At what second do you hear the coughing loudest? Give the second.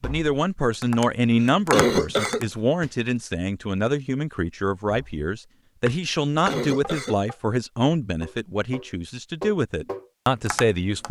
2 s.